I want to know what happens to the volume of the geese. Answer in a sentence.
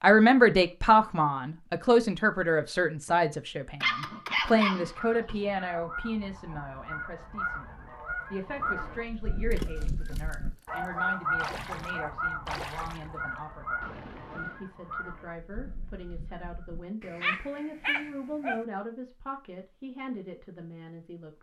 The loudness of the geese goes up, then down.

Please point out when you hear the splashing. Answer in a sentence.
You can hear the splashing from 8.4 to 14.7 s.